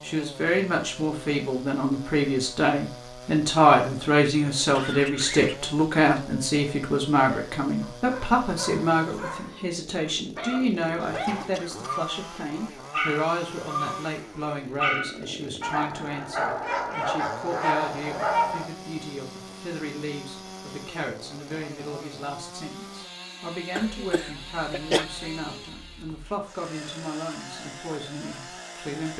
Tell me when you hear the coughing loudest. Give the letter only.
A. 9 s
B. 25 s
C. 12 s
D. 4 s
B.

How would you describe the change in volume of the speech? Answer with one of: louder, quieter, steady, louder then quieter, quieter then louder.
quieter.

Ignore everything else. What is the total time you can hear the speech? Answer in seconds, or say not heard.
29 s.